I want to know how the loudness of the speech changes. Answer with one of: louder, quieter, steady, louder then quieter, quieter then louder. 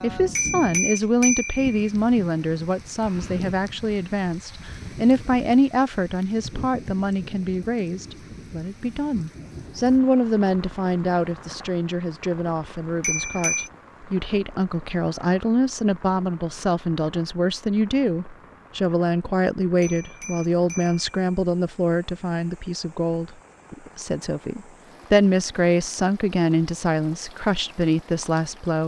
steady.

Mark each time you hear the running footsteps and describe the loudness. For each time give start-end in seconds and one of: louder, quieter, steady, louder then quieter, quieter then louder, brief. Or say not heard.
not heard.